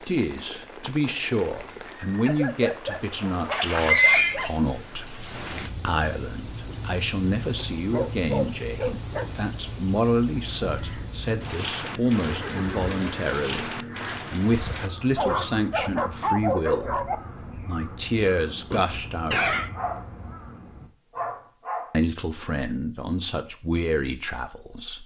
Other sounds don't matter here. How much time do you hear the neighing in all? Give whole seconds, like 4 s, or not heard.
3 s.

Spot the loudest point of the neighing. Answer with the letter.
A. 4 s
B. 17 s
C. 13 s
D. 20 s
A.